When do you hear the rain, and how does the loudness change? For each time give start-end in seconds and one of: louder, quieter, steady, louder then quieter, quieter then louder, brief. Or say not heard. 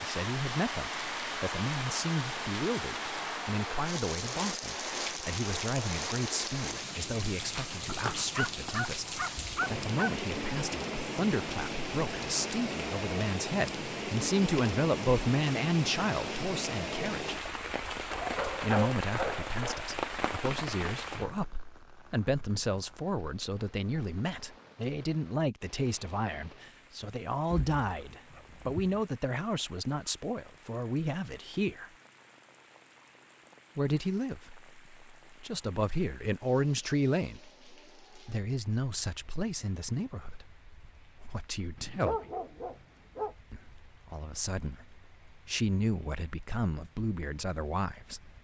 0.0-48.3 quieter.